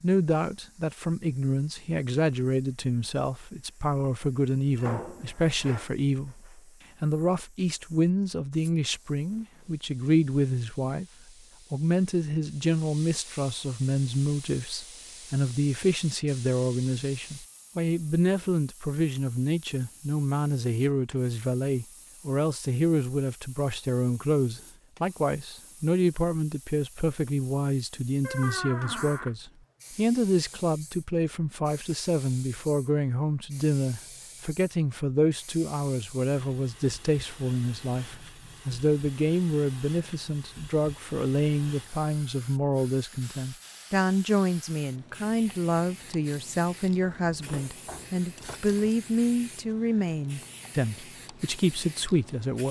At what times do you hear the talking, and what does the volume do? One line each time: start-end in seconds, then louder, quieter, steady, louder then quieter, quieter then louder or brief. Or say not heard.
0.0-11.1 steady
11.7-52.6 steady.